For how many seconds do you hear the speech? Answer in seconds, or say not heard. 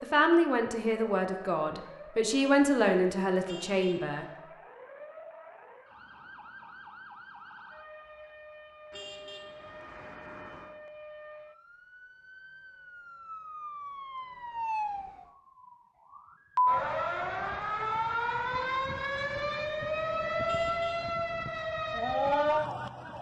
4 s.